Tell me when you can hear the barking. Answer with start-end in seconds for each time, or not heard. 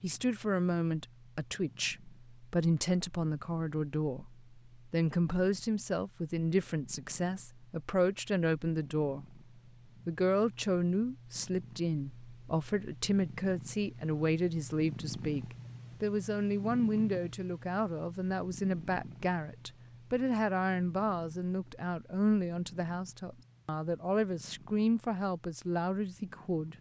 not heard.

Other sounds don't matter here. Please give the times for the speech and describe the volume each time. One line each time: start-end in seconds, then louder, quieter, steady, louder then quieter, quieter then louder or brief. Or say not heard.
0.0-9.4 steady
10.1-26.7 steady.